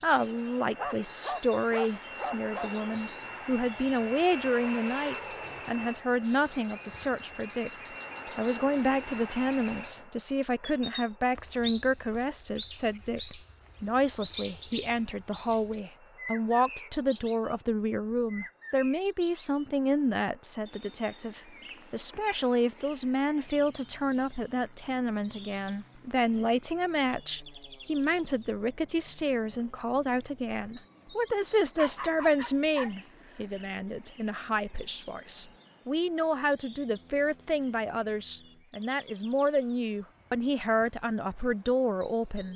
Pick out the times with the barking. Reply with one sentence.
The barking can be heard from 0.8 to 2.7 s and from 31.8 to 33.4 s.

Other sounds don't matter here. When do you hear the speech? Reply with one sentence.
The speech can be heard from 0.0 to 7.7 s and from 8.3 to 42.5 s.